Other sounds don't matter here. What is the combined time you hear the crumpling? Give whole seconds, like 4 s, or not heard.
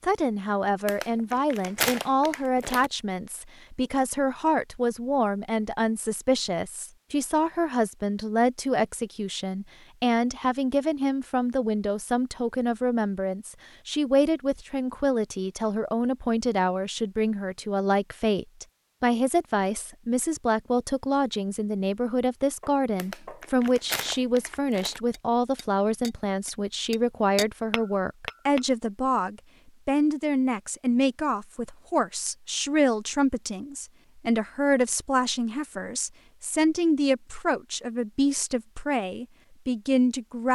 4 s.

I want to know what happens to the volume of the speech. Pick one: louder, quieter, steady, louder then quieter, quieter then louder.
steady.